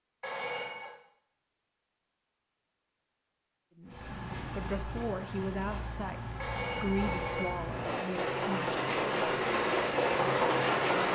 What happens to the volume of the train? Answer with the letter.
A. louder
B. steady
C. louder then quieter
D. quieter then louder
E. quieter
A.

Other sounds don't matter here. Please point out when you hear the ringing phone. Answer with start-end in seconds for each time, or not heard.
0.2-0.9, 6.3-7.5.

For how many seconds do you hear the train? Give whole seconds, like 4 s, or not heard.
7 s.